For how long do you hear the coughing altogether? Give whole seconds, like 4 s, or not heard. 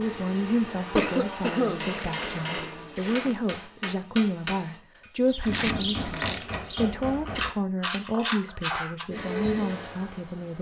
2 s.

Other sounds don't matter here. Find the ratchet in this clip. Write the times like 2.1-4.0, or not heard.
5.2-9.1.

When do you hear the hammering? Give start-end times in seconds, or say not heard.
1.8-7.5.